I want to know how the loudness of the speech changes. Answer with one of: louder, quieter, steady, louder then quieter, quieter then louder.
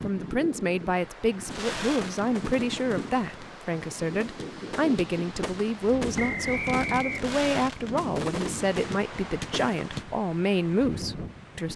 steady.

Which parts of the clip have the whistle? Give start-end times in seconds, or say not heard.
6.2-7.3.